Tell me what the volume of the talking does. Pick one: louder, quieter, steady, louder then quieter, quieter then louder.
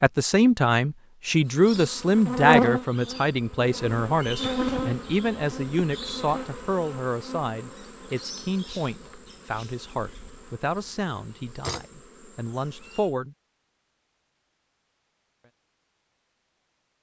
quieter.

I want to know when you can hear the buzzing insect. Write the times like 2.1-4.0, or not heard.
1.4-13.2.